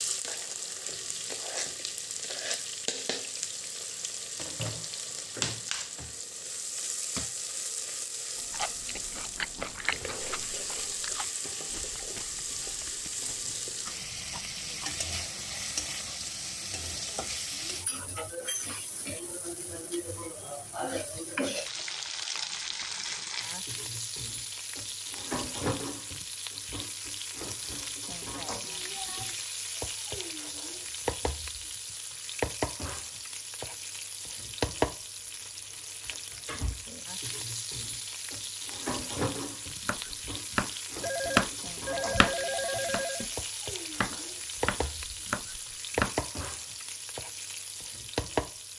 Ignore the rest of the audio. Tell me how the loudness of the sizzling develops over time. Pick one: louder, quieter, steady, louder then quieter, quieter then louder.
steady.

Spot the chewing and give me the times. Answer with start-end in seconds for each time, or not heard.
8.3-14.9.